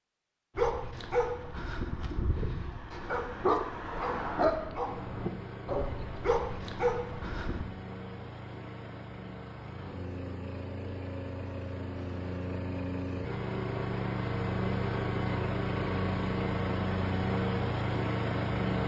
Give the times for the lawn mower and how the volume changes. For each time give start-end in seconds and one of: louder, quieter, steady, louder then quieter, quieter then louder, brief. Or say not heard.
4.8-18.8 louder.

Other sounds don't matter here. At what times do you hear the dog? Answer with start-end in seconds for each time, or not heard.
0.6-7.7.